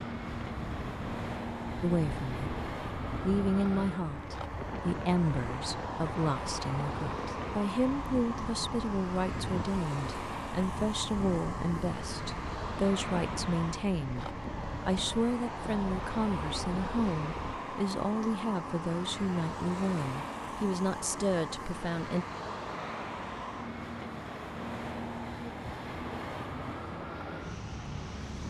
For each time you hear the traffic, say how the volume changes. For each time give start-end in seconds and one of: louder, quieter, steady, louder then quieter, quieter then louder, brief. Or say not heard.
0.0-28.4 steady.